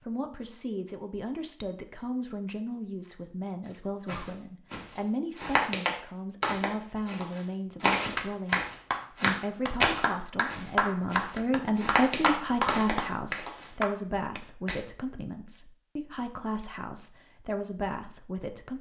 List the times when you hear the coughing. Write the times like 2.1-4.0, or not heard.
4.0-4.5.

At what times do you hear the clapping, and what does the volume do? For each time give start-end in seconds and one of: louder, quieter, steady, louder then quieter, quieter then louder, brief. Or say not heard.
8.2-14.8 steady.